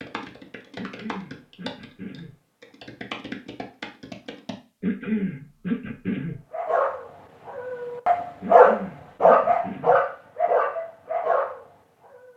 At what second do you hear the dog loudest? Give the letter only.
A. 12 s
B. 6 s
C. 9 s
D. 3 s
C.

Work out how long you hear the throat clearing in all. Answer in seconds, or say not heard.
5 s.